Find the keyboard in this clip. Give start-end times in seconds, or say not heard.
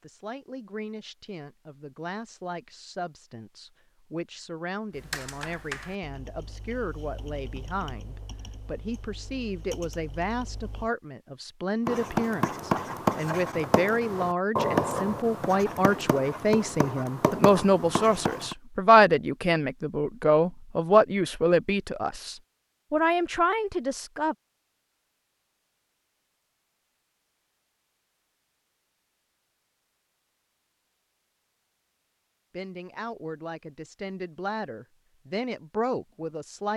4.9-10.9.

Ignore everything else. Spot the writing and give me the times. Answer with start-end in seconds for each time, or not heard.
11.8-18.6.